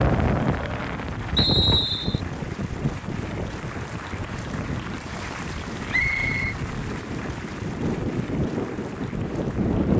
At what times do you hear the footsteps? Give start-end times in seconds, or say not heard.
not heard.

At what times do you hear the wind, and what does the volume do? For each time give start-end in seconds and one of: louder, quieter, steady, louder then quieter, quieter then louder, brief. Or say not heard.
0.0-9.9 quieter then louder.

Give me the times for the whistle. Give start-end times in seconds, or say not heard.
1.4-2.2, 5.9-6.5.